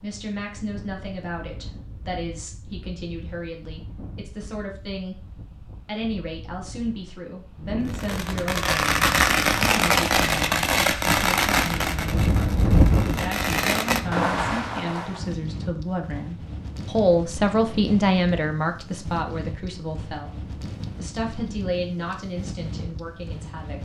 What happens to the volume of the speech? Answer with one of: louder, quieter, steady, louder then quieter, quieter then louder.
louder then quieter.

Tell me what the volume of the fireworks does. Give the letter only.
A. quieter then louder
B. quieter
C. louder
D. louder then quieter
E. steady
A.